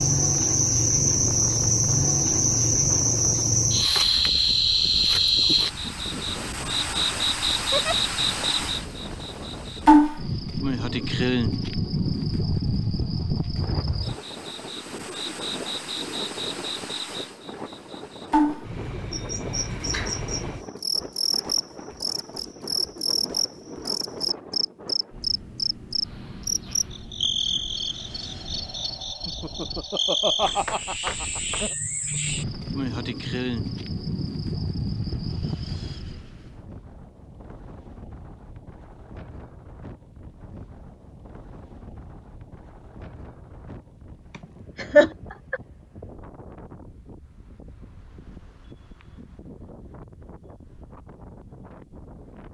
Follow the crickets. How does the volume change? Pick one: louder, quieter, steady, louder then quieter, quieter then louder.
quieter.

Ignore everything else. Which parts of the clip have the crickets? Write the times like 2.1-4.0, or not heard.
0.0-36.1.